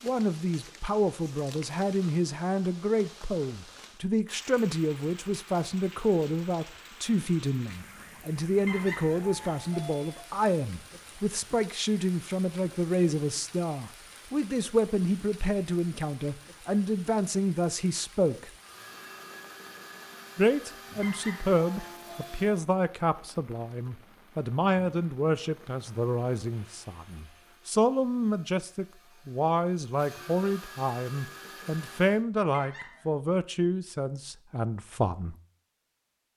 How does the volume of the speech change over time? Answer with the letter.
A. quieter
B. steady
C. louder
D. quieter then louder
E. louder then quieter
B.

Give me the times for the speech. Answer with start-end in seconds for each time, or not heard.
0.0-18.5, 20.4-35.4.